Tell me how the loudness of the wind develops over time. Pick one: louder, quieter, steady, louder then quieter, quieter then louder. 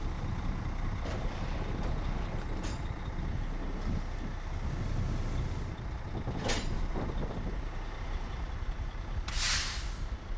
quieter.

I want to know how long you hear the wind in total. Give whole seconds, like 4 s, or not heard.
10 s.